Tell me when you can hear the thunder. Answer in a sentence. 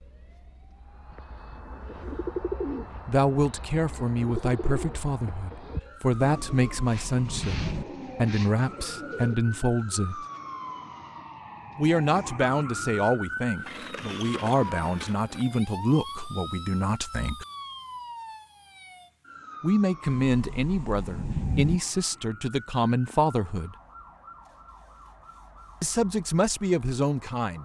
The thunder can be heard from 6.1 to 7.8 s and from 20.1 to 21.8 s.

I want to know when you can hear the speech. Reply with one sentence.
The speech can be heard from 3.0 to 10.2 s, from 11.8 to 17.4 s, from 19.6 to 23.8 s and from 25.8 to 27.6 s.